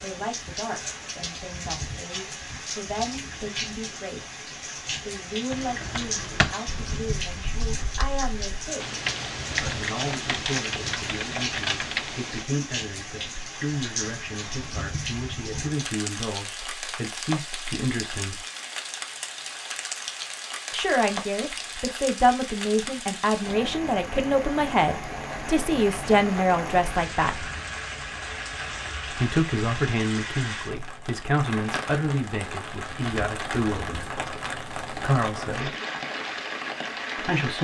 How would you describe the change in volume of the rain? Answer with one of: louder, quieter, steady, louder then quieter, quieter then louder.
steady.